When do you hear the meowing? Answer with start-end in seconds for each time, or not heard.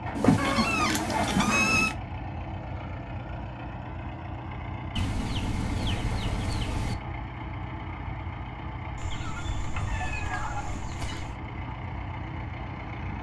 0.1-1.9, 9.7-10.8.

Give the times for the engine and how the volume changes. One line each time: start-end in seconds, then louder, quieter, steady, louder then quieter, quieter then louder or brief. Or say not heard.
0.0-13.1 steady.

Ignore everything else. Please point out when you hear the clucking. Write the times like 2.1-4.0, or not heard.
0.1-1.8, 5.0-7.0, 8.9-11.3.